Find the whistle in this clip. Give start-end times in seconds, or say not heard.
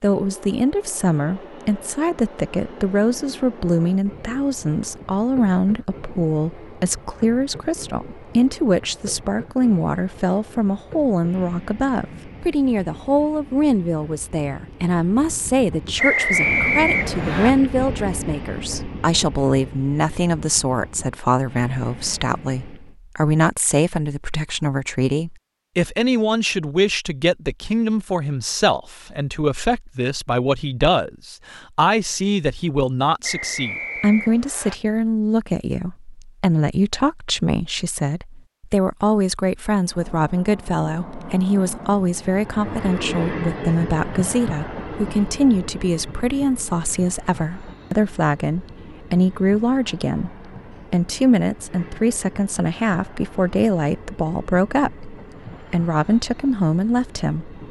15.9-17.5, 33.2-34.8.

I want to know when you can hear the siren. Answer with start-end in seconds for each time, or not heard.
not heard.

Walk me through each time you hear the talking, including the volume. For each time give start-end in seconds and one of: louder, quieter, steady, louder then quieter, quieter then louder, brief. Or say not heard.
0.0-57.5 steady.